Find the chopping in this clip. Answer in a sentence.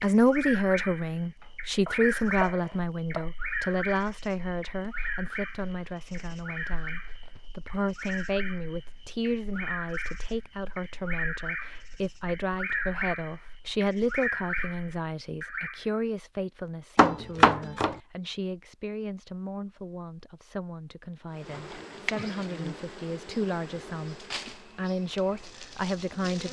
The chopping can be heard from 1.4 to 3.3 s and from 16.9 to 17.9 s.